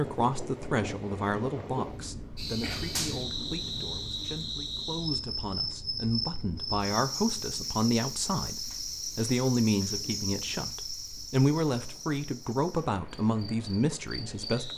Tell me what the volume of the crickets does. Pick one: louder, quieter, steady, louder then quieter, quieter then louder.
quieter.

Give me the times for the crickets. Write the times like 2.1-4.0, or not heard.
2.4-14.7.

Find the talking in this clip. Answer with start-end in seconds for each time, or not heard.
0.0-14.7.